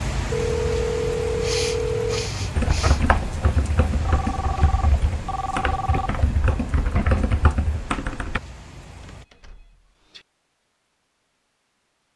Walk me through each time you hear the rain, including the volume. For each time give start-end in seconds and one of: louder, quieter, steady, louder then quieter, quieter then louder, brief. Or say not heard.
0.0-9.2 quieter.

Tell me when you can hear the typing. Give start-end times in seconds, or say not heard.
2.5-8.4.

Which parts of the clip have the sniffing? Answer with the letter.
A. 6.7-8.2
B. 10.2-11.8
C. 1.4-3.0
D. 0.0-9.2
C.